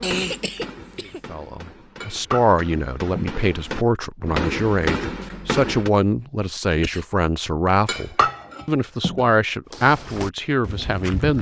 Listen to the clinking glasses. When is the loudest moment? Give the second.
8 s.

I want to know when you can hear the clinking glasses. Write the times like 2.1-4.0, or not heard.
2.0-3.4, 7.8-9.2.